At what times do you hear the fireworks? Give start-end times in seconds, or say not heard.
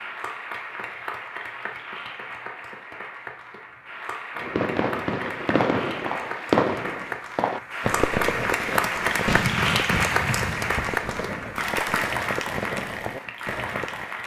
4.3-14.1.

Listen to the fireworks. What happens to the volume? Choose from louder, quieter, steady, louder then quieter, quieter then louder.
quieter.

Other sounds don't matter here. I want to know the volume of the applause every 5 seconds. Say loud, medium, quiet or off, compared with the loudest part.
medium, loud, loud.